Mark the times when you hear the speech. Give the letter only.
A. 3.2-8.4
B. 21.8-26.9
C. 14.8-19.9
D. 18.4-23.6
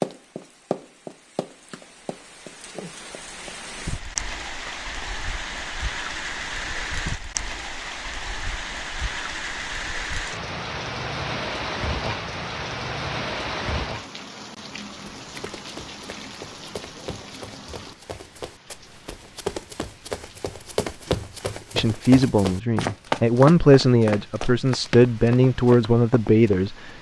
B.